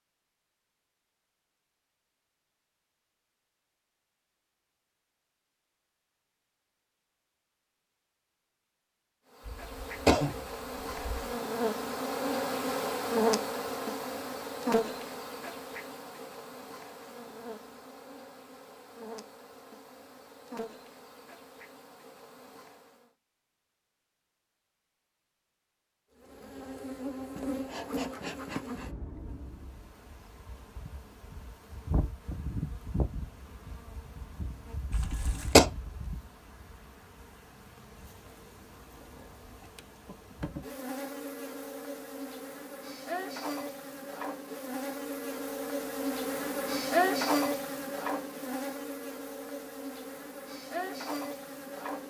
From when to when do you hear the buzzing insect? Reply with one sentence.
You can hear the buzzing insect from 9.3 to 23.1 s and from 26.2 to 52.0 s.